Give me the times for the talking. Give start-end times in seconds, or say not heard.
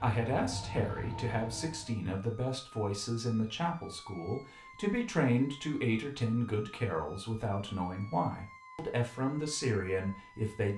0.0-10.7.